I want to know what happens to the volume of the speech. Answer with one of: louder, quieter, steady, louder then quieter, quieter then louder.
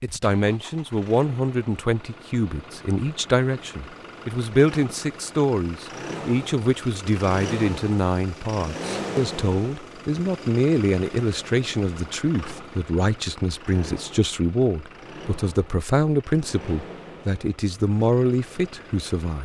steady.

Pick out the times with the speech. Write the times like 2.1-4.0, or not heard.
0.0-19.4.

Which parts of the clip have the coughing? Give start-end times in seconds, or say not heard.
not heard.